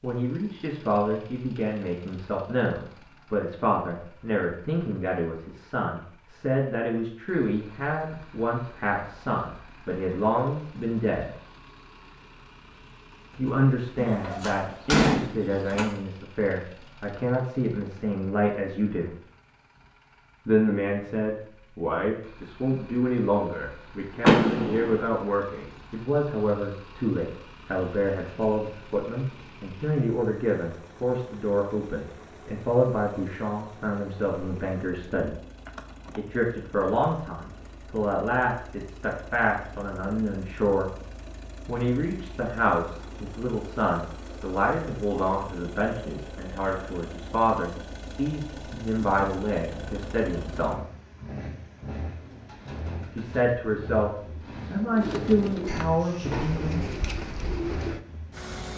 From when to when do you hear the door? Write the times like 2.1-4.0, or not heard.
13.9-15.8, 24.2-25.1, 55.6-56.6.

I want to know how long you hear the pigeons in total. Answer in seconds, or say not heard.
6 s.